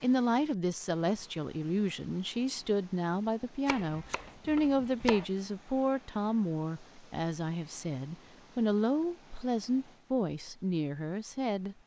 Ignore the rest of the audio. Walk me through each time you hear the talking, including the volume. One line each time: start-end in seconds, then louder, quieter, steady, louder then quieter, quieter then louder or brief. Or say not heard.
0.0-11.8 steady.